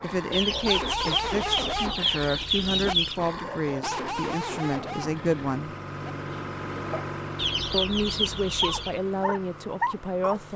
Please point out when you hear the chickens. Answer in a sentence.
You can hear the chickens from 0.3 to 3.2 s and from 7.3 to 9.0 s.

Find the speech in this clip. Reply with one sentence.
The speech can be heard from 0.0 to 5.8 s and from 7.7 to 10.5 s.